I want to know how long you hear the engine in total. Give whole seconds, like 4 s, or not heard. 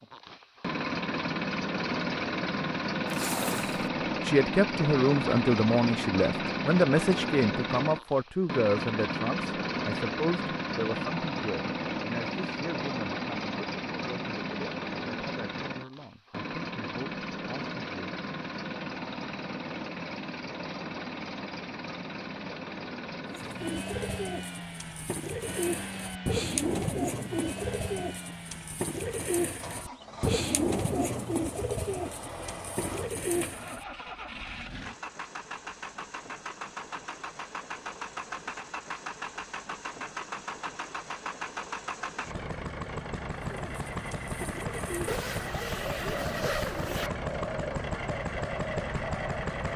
50 s.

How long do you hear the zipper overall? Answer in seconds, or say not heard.
3 s.